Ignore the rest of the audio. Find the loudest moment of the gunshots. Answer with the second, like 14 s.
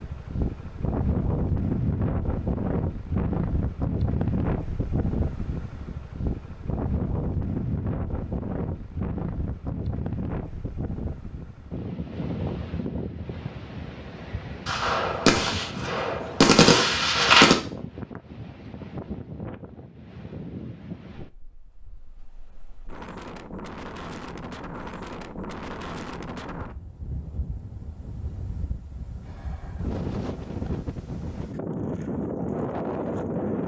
17 s.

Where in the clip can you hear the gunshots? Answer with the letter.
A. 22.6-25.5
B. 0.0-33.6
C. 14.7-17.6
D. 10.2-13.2
C.